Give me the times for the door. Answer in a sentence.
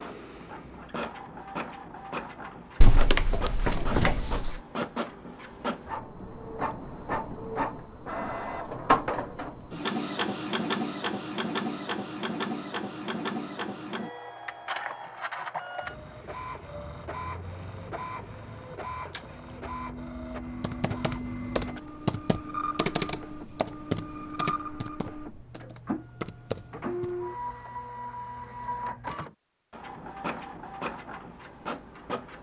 You can hear the door from 2.8 to 4.6 s.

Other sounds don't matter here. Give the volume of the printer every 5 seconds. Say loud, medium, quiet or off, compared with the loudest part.
medium, loud, loud, medium, medium, medium, medium.